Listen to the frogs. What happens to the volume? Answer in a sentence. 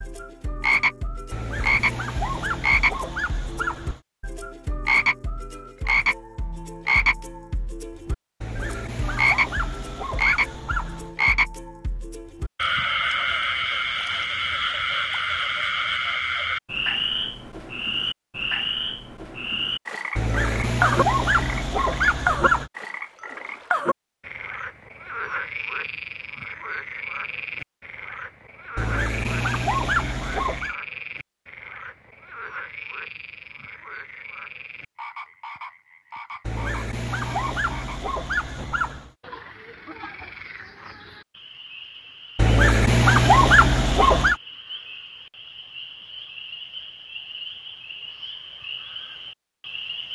The loudness of the frogs goes down.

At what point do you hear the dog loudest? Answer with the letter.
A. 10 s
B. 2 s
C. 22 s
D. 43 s
D.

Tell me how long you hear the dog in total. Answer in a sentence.
The dog can be heard for 15 seconds in total.